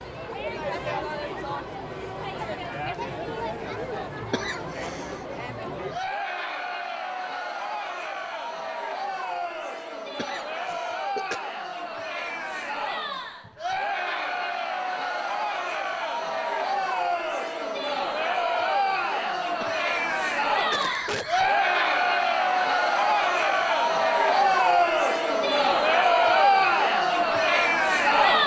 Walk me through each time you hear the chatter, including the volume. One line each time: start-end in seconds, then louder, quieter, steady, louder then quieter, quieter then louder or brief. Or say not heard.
0.0-28.4 louder.